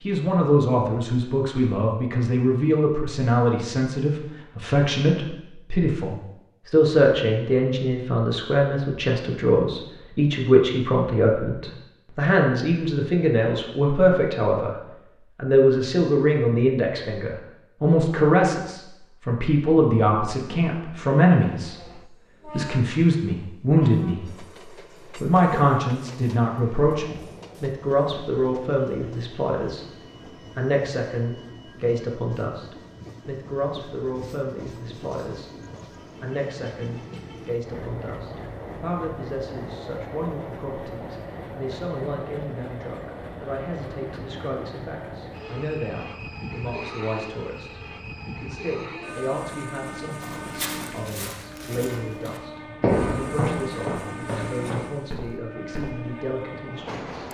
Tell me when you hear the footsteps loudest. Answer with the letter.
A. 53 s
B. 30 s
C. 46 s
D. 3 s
A.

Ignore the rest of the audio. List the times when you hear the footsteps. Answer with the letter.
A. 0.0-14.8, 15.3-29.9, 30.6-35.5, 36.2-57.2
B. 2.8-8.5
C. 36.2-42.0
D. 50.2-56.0
D.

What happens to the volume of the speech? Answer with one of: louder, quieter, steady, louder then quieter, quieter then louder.
quieter.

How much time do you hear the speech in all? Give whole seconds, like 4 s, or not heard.
55 s.